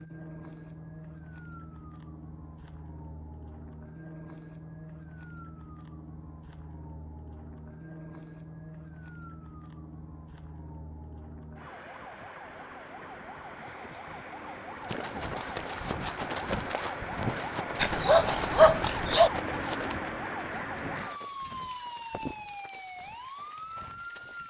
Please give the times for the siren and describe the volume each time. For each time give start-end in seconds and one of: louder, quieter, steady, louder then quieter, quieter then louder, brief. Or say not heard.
0.0-24.4 louder.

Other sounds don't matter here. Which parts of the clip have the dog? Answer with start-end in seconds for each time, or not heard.
17.8-19.3.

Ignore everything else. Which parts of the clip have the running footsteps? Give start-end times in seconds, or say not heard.
14.8-24.4.